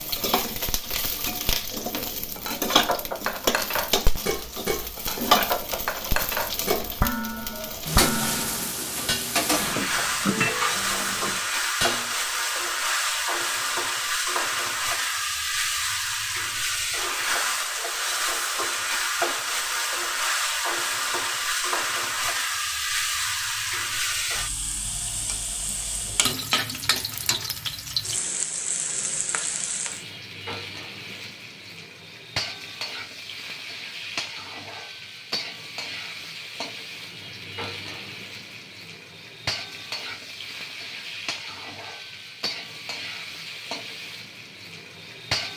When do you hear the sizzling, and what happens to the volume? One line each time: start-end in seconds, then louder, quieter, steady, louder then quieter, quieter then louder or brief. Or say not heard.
0.0-45.5 quieter.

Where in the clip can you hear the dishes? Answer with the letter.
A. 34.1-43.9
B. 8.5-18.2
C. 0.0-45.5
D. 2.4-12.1
D.